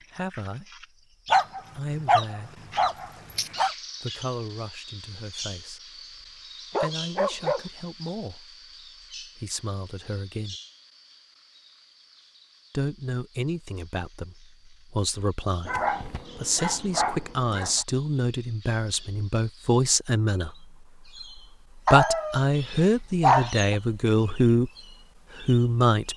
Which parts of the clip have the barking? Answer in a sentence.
You can hear the barking from 1.3 to 3.7 s, from 6.7 to 7.7 s, from 15.7 to 17.9 s and from 21.9 to 23.8 s.